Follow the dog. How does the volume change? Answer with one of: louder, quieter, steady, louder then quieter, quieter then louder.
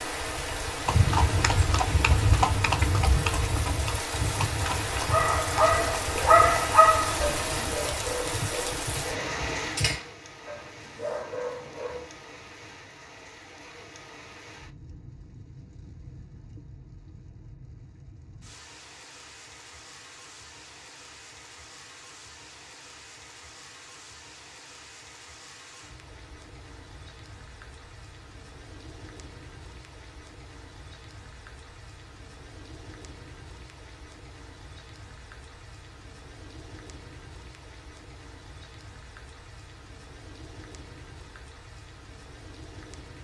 quieter.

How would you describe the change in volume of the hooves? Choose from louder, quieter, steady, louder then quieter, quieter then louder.
quieter.